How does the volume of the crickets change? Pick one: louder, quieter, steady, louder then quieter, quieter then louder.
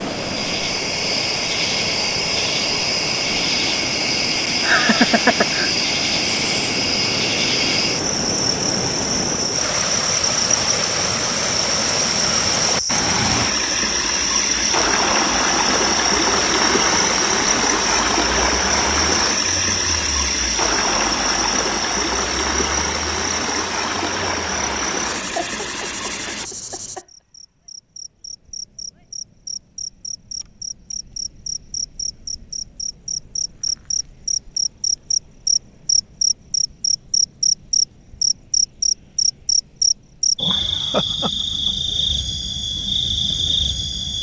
quieter then louder.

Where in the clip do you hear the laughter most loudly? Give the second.
5 s.